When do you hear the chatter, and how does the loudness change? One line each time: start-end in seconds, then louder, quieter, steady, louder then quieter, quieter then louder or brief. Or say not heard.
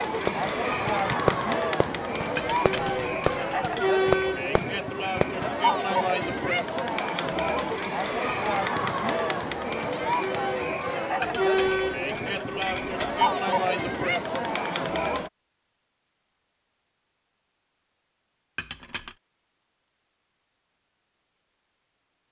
0.0-15.3 steady.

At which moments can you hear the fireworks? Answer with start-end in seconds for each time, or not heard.
0.2-5.5.